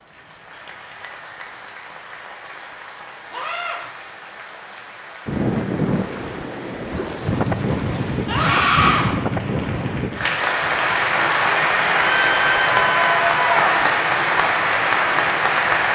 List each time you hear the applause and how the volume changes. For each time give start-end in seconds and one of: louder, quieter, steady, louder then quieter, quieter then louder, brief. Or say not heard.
0.0-15.9 louder.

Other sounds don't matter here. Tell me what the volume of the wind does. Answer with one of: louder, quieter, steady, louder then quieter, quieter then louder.
quieter.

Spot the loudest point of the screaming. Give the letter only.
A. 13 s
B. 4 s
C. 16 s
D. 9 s
D.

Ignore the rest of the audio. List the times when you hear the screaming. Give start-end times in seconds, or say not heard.
3.3-3.8, 8.2-9.1, 11.9-13.8.